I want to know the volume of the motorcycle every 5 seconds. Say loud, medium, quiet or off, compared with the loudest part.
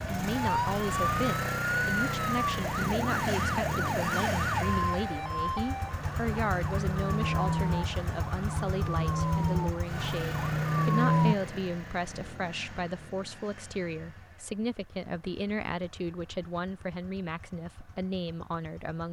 loud, medium, medium, quiet.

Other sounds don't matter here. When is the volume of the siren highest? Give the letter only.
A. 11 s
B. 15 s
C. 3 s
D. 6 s
A.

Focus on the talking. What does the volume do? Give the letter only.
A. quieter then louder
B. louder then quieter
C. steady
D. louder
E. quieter
C.